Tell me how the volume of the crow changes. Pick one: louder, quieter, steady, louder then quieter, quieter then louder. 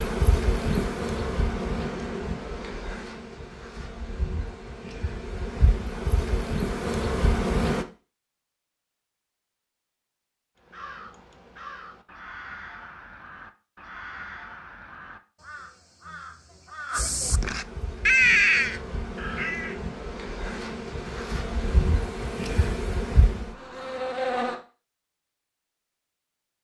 louder.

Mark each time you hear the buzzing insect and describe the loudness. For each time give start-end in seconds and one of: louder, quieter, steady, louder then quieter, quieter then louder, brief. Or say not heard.
0.0-7.8 quieter then louder
17.2-24.6 louder.